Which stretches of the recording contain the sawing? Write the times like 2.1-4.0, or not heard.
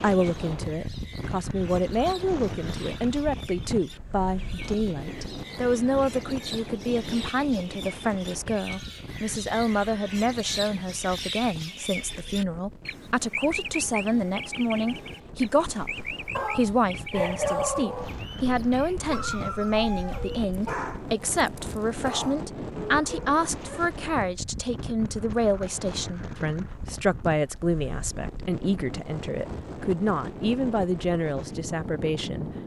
not heard.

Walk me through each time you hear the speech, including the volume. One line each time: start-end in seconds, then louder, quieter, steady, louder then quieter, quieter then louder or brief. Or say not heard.
0.0-32.5 steady.